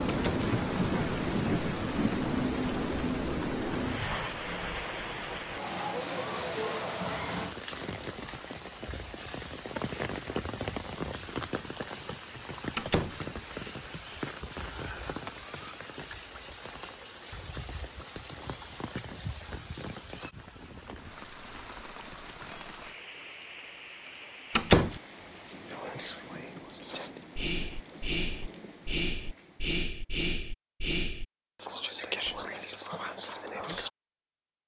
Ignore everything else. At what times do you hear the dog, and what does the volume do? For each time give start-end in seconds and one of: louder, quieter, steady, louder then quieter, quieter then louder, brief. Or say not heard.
not heard.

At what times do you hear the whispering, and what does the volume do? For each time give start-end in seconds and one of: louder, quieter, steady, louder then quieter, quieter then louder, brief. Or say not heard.
25.6-33.9 steady.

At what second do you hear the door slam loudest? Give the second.
25 s.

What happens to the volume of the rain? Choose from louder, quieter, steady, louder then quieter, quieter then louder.
quieter.